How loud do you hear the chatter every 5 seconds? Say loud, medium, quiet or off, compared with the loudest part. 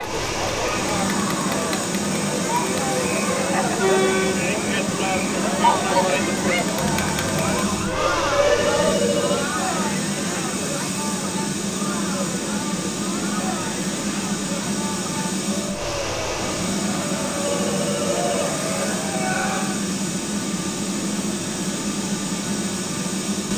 loud, loud, medium, medium, off.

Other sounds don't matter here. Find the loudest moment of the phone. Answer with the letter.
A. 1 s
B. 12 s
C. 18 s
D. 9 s
D.